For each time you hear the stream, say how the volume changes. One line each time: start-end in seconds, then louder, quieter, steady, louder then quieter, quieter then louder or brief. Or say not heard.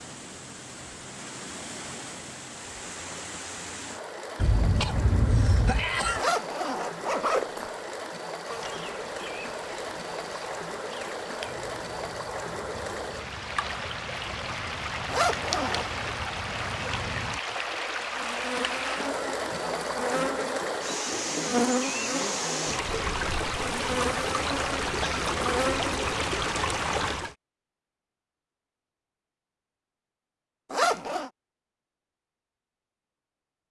0.0-27.4 louder.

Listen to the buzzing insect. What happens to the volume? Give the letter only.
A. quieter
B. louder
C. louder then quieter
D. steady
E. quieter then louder
B.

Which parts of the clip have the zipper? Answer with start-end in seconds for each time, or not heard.
6.2-8.0, 15.1-15.9, 30.7-31.3.